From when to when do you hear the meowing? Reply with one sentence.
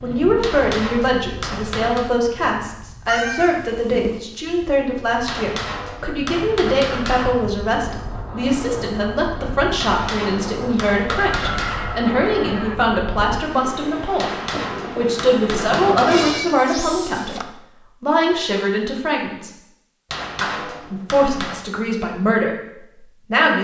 You can hear the meowing from 3.0 to 4.2 s, from 11.4 to 12.8 s and from 16.1 to 17.4 s.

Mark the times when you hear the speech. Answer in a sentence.
The speech can be heard from 0.0 to 19.5 s and from 20.4 to 23.6 s.